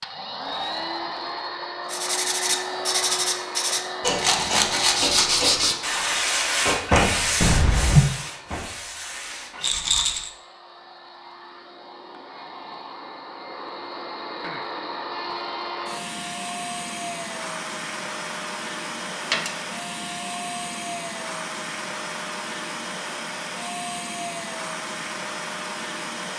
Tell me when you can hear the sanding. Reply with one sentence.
The sanding can be heard from 1.9 to 10.2 s.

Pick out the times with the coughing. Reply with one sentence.
The coughing can be heard from 7.4 to 8.1 s.